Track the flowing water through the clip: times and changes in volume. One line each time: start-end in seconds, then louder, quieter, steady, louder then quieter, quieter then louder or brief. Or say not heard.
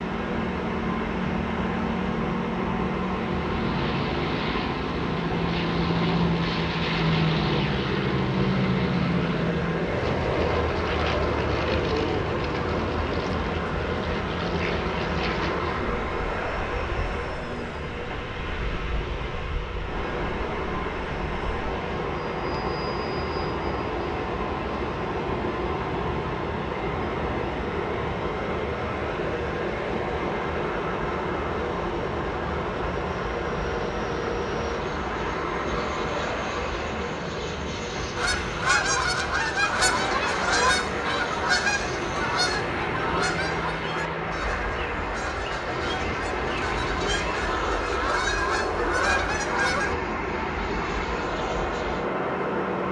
0.0-52.8 steady.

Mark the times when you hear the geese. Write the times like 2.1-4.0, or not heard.
38.1-50.0.